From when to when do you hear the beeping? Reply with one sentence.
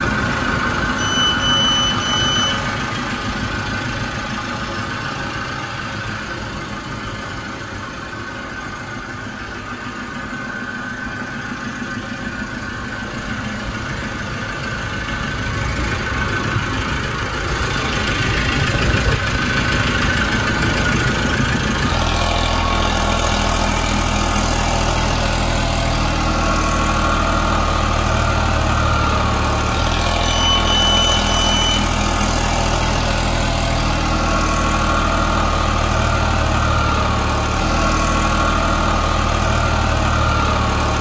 You can hear the beeping from 0.9 to 2.6 s and from 30.2 to 31.9 s.